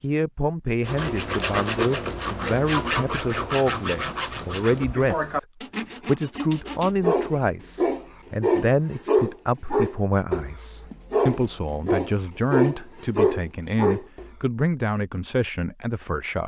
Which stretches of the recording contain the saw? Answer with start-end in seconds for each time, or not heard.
0.8-7.0.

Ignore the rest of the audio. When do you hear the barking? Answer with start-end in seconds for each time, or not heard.
6.7-14.3.